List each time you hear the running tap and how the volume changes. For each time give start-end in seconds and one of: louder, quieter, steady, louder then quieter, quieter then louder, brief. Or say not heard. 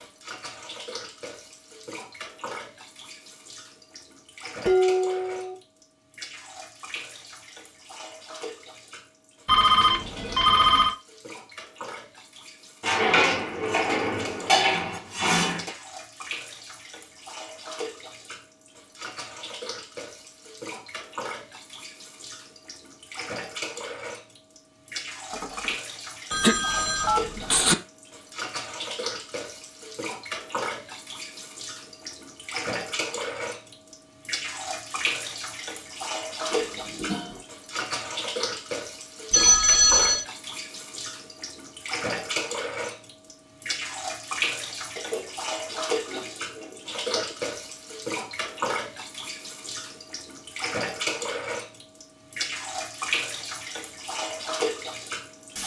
0.0-55.6 louder.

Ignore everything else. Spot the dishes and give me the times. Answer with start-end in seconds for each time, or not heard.
4.7-5.5, 12.8-15.7, 25.3-25.8, 36.5-37.4, 45.0-47.4.